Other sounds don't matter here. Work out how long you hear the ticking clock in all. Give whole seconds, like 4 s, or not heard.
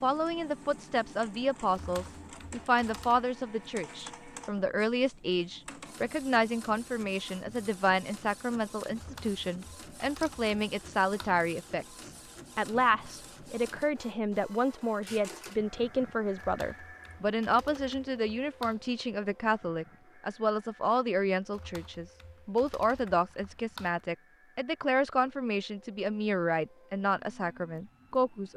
not heard.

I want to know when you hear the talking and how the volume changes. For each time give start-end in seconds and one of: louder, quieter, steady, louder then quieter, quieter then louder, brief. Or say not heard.
0.0-28.5 steady.